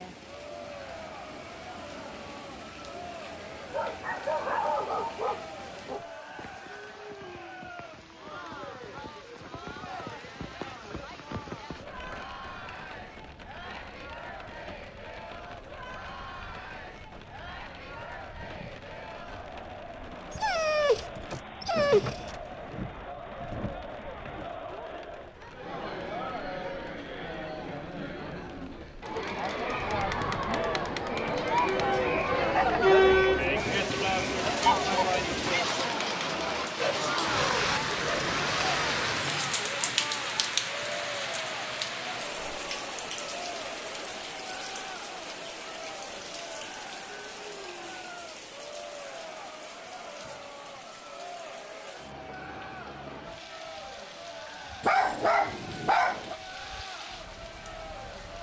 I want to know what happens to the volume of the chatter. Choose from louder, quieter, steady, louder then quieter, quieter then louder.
louder then quieter.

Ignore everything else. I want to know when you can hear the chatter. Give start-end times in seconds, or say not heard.
0.1-58.3.